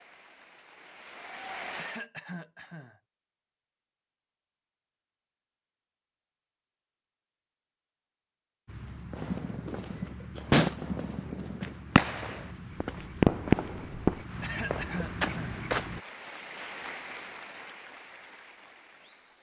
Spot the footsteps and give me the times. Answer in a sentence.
The footsteps can be heard from 8.7 to 16.0 s.